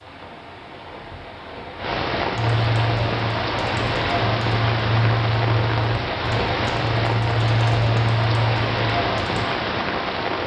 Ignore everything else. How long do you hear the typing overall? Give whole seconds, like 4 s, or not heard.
7 s.